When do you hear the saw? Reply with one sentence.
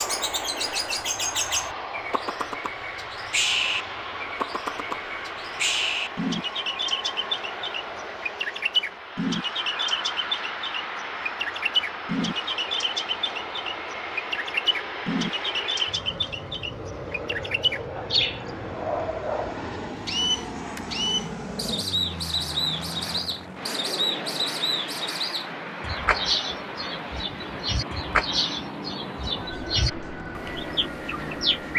You can't hear the saw here.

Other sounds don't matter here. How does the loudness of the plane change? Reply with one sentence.
The loudness of the plane stays about the same.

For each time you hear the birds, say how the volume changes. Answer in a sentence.
You can hear the birds from 0.0 to 31.7 s, at a steady volume.